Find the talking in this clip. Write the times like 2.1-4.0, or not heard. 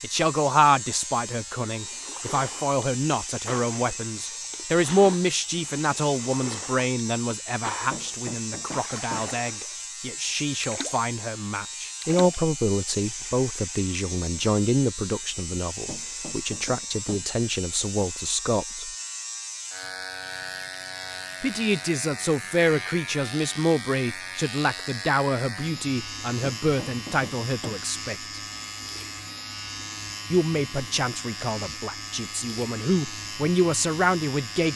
0.0-18.9, 21.4-28.1, 30.3-34.7.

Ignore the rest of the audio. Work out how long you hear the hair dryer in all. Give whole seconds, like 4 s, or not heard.
not heard.